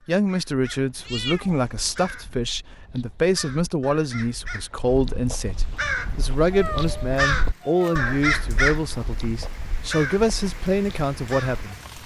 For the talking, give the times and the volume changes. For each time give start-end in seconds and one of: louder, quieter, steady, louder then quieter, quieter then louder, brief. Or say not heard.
0.1-11.8 steady.